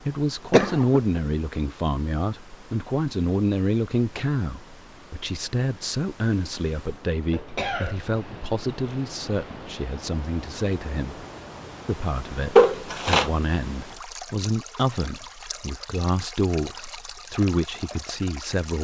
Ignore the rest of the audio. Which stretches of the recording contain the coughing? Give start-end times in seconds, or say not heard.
0.5-1.2, 7.3-8.4, 12.6-13.3.